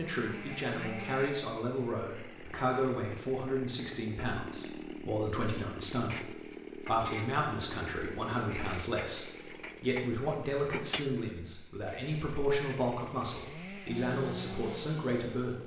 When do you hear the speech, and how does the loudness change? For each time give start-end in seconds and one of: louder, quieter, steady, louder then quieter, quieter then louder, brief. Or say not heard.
0.0-15.6 steady.